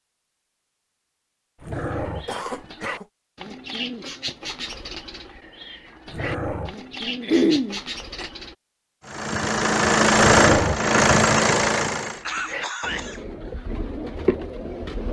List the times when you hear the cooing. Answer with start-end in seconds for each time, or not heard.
1.9-8.6, 12.1-15.0.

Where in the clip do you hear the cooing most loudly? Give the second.
14 s.